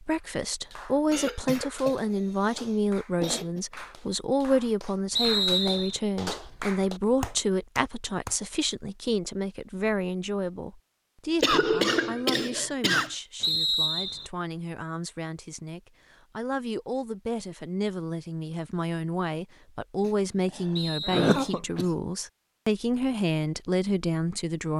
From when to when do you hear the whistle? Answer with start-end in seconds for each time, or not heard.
5.2-6.0, 13.4-14.3, 20.8-21.6.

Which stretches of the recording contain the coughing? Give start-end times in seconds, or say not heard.
1.1-3.6, 11.4-13.2, 20.6-21.9.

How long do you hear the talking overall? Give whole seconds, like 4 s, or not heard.
25 s.